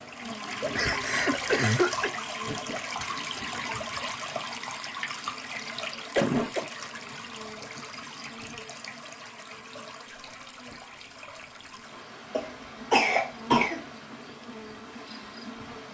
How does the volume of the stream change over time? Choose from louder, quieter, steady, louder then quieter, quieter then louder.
quieter.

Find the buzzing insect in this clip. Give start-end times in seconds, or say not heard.
0.0-15.9.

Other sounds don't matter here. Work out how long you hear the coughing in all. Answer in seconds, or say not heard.
3 s.